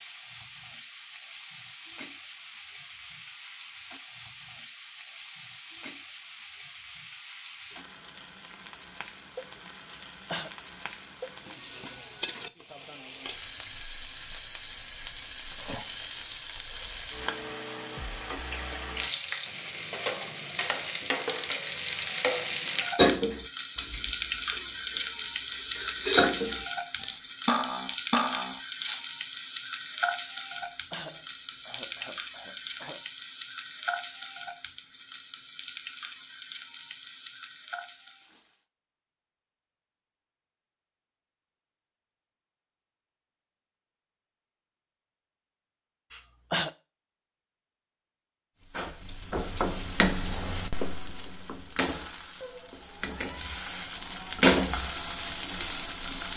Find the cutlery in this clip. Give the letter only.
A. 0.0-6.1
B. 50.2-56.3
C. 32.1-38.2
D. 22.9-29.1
D.